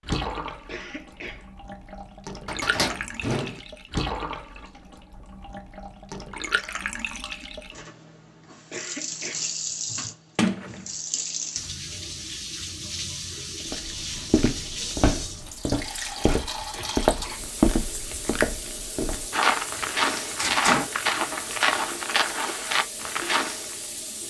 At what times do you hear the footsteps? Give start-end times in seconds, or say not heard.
13.7-23.8.